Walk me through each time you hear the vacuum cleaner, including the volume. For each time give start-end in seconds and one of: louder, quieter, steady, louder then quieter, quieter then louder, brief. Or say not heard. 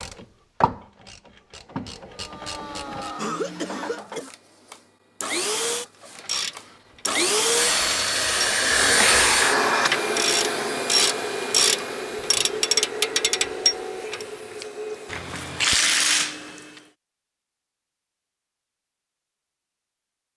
2.1-16.9 louder then quieter.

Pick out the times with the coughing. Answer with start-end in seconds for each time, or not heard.
3.1-4.3.